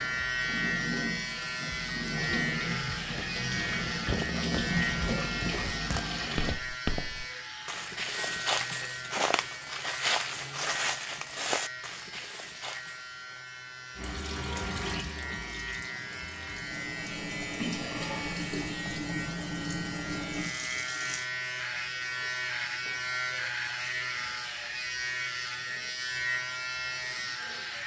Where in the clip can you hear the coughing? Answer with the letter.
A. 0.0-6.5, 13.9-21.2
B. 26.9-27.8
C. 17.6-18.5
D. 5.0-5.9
C.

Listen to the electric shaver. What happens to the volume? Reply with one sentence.
The volume of the electric shaver goes down, then up.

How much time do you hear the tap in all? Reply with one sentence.
The tap can be heard for 14 seconds in total.